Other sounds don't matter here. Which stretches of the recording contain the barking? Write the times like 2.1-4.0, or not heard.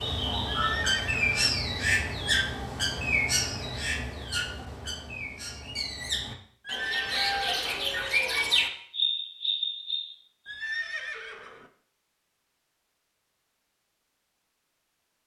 not heard.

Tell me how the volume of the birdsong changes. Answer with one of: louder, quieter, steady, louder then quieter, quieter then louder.
quieter then louder.